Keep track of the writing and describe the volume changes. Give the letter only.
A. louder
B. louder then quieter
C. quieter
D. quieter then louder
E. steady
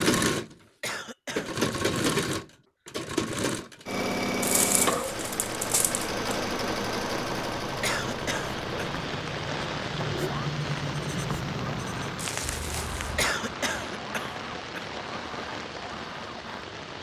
B.